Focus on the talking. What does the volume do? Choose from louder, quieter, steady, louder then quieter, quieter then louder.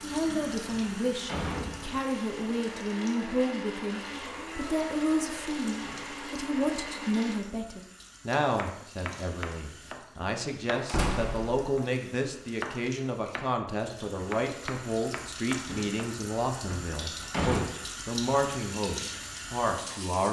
steady.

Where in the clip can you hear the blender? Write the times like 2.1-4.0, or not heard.
0.0-7.4.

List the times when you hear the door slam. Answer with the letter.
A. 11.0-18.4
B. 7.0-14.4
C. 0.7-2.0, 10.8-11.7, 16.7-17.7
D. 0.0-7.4
C.